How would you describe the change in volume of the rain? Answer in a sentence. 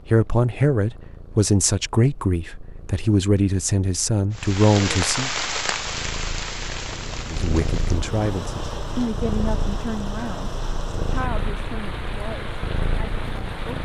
The volume of the rain goes down.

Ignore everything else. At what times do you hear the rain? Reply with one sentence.
The rain can be heard from 4.3 to 13.8 s.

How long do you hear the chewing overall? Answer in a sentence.
The chewing can't be heard in this clip.